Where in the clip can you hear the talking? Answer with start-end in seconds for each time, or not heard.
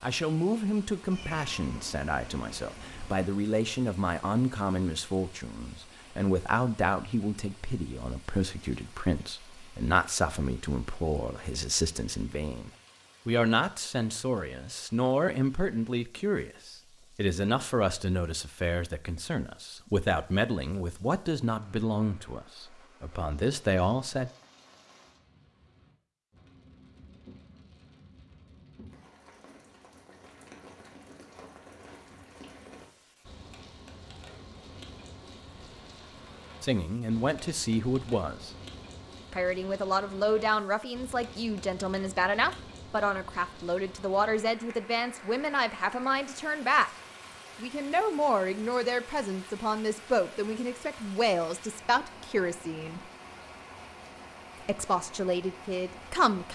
0.0-24.3, 36.6-38.5, 39.3-46.9, 47.6-53.0, 54.6-56.5.